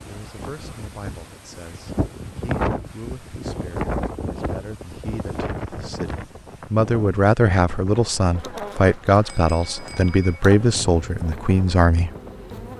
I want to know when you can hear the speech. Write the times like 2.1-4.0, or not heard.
0.1-12.1.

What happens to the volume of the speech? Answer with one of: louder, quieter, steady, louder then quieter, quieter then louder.
louder.